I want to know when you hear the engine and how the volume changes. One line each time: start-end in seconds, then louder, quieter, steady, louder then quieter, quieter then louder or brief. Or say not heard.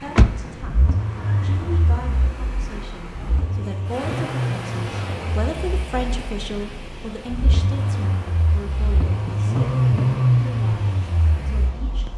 0.0-12.1 quieter then louder.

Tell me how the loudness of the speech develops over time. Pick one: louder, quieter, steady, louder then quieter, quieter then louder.
louder then quieter.